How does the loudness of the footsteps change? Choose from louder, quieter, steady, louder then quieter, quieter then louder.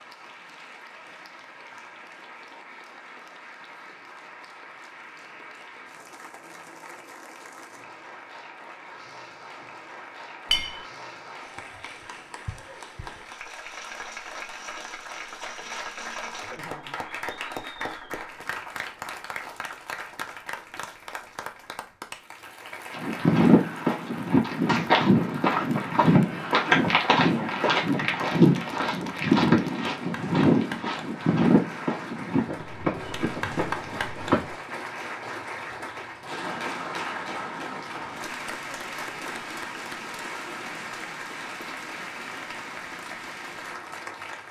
quieter.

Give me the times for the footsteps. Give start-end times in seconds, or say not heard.
22.9-34.5.